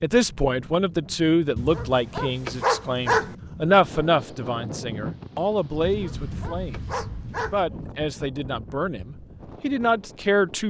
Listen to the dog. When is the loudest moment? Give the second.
3 s.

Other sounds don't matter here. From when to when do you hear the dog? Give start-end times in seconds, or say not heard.
1.6-3.4, 5.8-7.6.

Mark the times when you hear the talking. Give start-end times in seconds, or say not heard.
0.0-10.6.